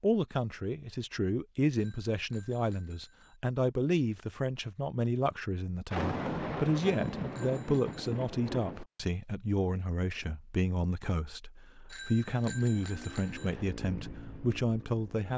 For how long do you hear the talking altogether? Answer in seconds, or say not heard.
15 s.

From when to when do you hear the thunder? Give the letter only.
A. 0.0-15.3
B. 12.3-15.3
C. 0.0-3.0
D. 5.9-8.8
D.